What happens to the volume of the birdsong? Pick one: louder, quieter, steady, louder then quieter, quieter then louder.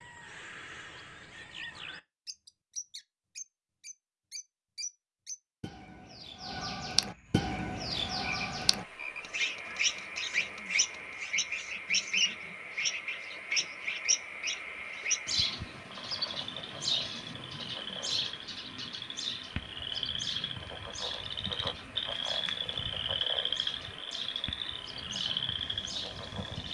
louder then quieter.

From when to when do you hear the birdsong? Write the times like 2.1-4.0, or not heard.
0.0-26.6.